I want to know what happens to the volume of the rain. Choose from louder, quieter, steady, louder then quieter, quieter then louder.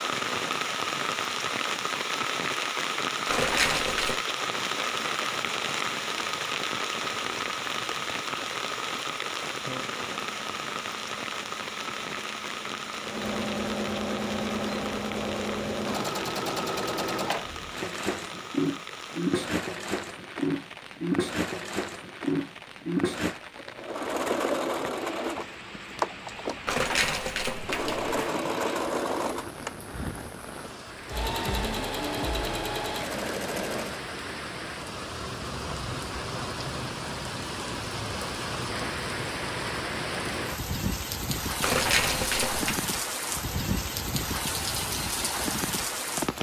quieter then louder.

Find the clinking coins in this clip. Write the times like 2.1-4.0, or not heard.
3.2-4.2, 26.6-28.1, 41.6-42.8.